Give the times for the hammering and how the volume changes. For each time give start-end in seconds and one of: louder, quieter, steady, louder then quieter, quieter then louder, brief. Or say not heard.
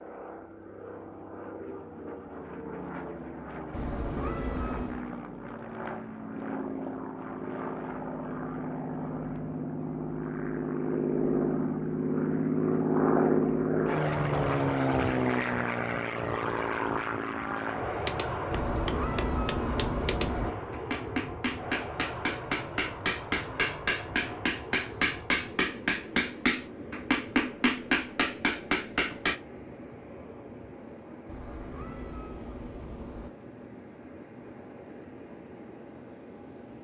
18.0-29.4 louder.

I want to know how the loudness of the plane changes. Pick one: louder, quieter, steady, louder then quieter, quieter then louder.
louder then quieter.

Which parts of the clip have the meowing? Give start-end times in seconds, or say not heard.
3.7-5.0, 18.5-20.5, 31.2-33.3.